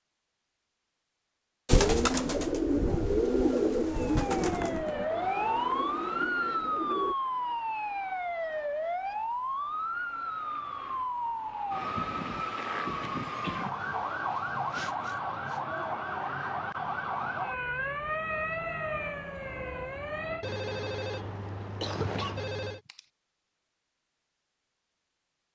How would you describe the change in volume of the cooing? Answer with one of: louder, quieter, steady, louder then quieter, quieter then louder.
quieter.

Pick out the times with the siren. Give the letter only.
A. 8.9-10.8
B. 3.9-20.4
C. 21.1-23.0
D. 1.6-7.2
B.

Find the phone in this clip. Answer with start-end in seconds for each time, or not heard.
20.4-22.8.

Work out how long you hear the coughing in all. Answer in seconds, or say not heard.
2 s.